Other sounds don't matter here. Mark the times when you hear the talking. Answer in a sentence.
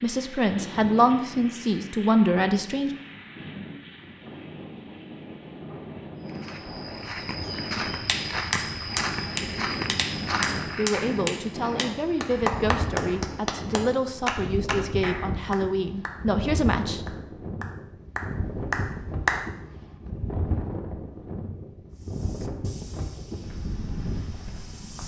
You can hear the talking from 0.0 to 2.9 s and from 10.8 to 17.1 s.